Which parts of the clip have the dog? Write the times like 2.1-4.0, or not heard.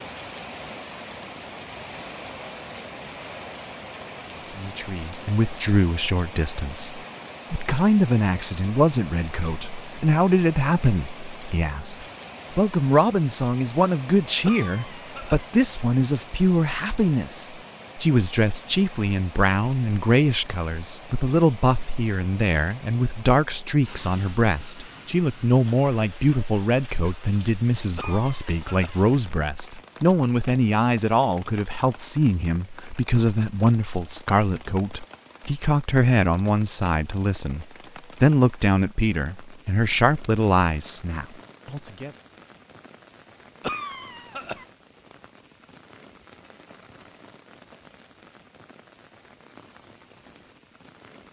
not heard.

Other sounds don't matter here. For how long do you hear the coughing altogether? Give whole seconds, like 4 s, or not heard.
3 s.